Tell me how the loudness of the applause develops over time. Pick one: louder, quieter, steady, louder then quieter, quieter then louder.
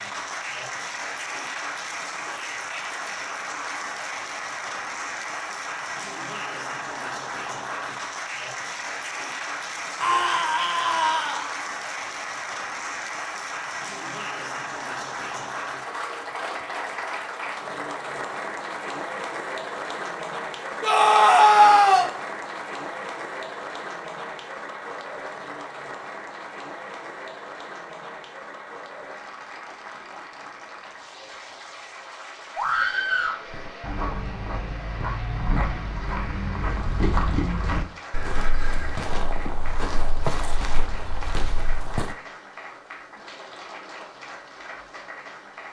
quieter.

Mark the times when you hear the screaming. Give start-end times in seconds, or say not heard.
10.0-11.5, 20.8-22.1, 32.5-33.4.